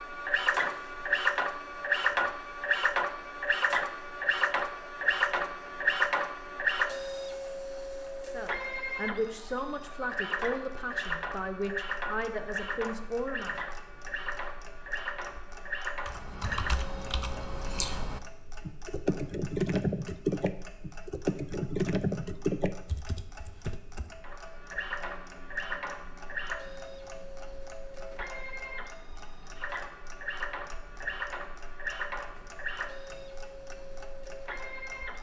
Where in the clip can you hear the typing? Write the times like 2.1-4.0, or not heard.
16.1-24.1.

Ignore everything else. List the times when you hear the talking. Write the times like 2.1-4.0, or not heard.
8.3-13.6.